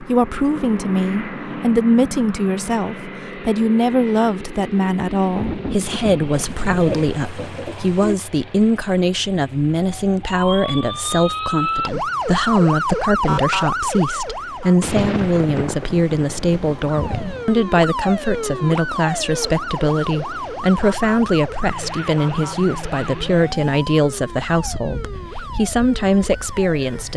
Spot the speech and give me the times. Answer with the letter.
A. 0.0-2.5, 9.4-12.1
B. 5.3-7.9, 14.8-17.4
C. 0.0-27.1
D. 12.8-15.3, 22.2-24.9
C.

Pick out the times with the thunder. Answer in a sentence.
The thunder can be heard from 5.3 to 7.9 s and from 14.8 to 17.4 s.